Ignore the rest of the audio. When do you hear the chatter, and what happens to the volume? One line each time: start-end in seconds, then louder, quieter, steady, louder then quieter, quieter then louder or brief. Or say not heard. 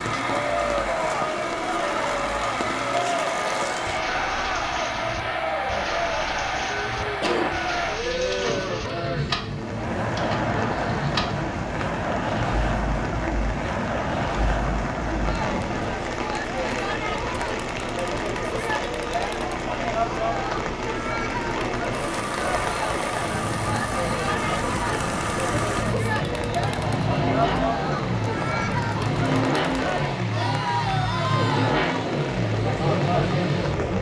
0.2-33.9 steady.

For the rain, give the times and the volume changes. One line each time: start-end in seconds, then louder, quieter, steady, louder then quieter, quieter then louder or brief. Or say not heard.
0.0-33.9 steady.